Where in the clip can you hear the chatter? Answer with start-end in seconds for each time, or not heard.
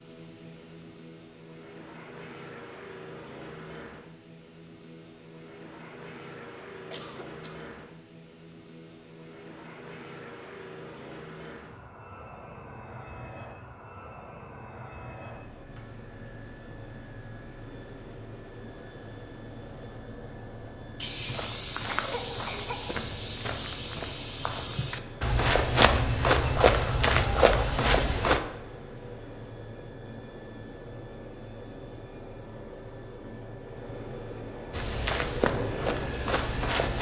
not heard.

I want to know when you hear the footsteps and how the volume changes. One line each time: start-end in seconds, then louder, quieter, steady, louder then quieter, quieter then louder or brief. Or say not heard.
20.9-28.4 steady
34.7-36.9 brief.